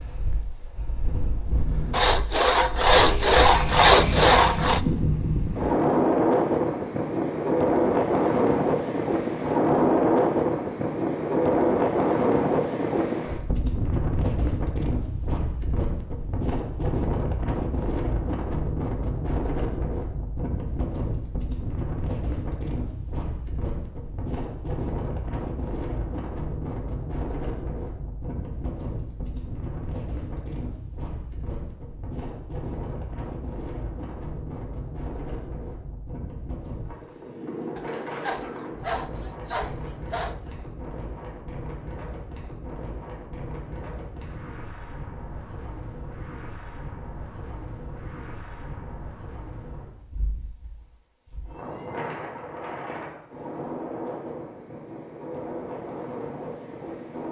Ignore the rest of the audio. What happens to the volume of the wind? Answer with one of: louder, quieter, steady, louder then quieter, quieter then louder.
quieter.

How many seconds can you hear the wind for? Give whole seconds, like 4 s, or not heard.
57 s.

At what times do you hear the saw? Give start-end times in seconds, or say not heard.
1.9-4.8, 37.8-40.5.